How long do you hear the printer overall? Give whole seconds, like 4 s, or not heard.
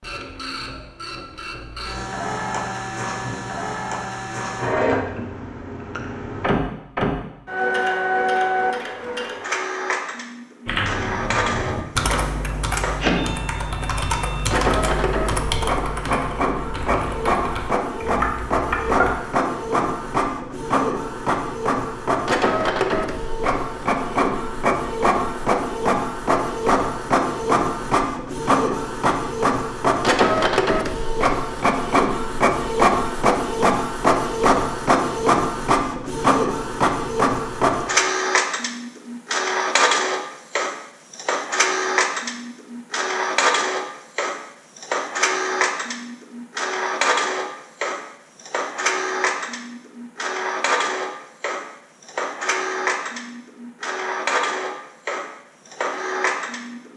57 s.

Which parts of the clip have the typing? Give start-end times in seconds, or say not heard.
10.7-19.1.